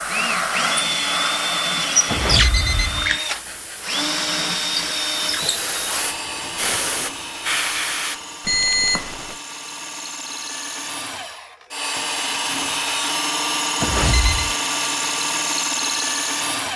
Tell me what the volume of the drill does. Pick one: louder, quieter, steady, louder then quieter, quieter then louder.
quieter then louder.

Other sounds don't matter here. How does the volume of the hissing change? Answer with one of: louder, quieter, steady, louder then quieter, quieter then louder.
quieter then louder.